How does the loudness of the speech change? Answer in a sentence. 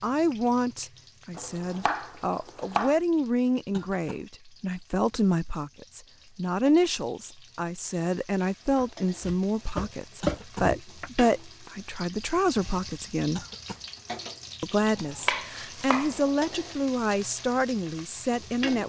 The loudness of the speech stays about the same.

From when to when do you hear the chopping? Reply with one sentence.
You can hear the chopping from 1.4 to 3.0 s, from 8.8 to 11.1 s and from 15.2 to 16.1 s.